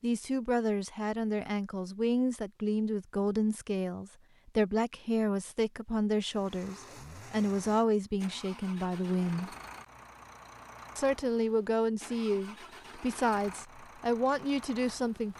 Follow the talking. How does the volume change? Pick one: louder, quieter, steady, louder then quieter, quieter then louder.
steady.